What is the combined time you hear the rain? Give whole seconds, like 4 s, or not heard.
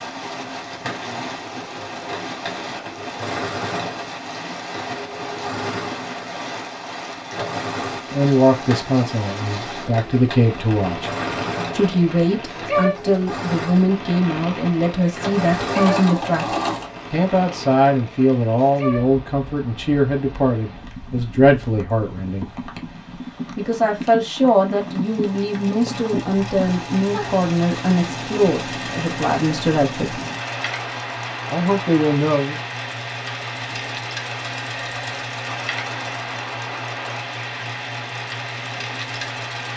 40 s.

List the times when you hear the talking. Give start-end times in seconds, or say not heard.
8.1-11.1, 11.7-22.5, 23.6-30.2, 31.5-32.5.